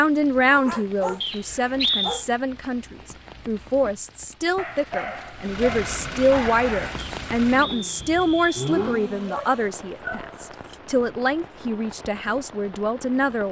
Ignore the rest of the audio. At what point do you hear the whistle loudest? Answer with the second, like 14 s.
2 s.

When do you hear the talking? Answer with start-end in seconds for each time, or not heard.
0.0-13.4.